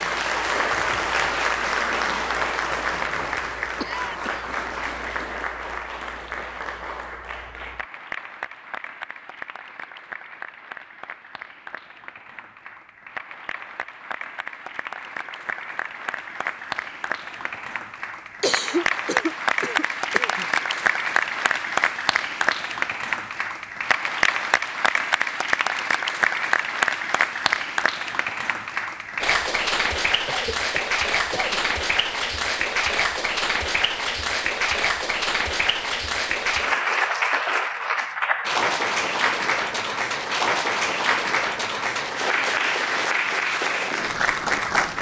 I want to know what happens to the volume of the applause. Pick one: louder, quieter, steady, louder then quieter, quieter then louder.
quieter then louder.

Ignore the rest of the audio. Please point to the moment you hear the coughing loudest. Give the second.
19 s.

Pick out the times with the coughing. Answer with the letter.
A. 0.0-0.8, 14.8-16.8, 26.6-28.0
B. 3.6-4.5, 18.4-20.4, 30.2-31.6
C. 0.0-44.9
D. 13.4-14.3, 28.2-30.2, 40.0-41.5
B.